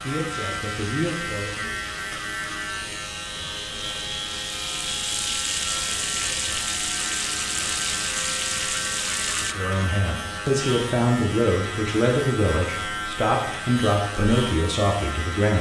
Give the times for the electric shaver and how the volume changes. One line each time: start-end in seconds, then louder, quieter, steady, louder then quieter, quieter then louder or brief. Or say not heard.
0.0-15.5 steady.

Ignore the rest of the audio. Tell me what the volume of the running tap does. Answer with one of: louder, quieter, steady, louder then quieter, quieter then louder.
louder.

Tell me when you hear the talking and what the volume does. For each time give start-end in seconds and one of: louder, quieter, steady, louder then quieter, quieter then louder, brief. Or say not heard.
0.0-1.8 brief
9.4-15.5 steady.